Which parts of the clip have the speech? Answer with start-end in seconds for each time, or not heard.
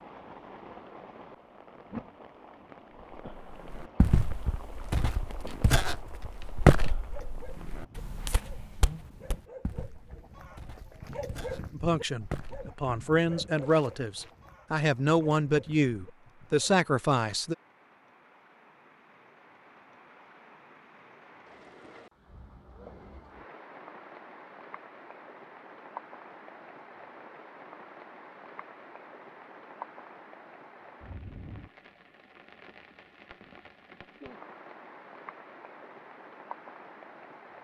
11.8-17.6.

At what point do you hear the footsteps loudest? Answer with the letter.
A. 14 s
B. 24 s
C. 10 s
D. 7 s
D.